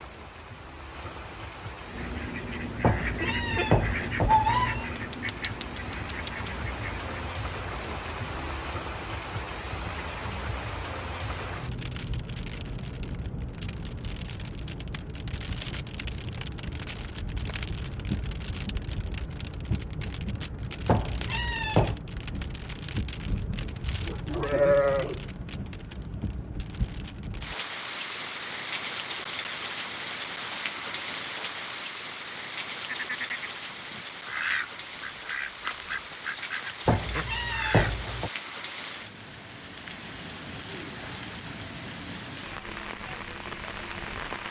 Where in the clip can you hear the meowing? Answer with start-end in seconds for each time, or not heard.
2.8-4.9, 20.9-21.9, 36.9-38.3.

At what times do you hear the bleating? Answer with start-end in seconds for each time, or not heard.
23.9-25.2.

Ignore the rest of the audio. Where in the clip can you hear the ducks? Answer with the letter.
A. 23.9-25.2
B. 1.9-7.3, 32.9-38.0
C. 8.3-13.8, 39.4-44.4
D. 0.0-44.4
B.